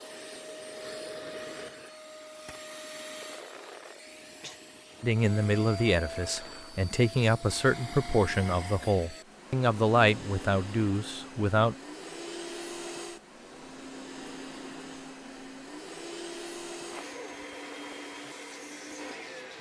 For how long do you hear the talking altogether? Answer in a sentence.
The talking can be heard for 7 seconds in total.